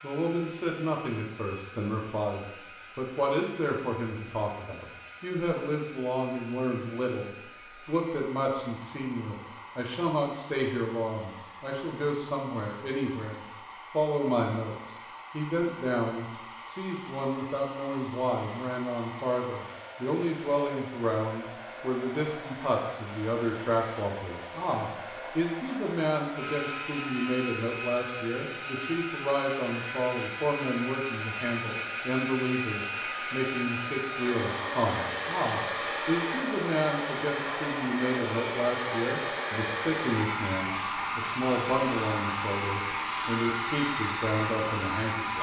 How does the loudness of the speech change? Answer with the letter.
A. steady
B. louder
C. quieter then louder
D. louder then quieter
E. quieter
A.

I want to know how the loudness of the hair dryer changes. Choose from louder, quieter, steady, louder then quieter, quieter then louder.
louder.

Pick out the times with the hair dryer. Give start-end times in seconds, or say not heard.
0.0-45.3.